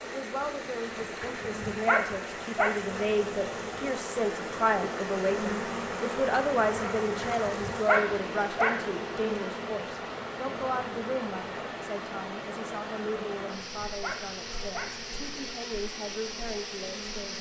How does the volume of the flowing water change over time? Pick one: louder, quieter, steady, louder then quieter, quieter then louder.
steady.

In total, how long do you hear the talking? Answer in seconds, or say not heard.
17 s.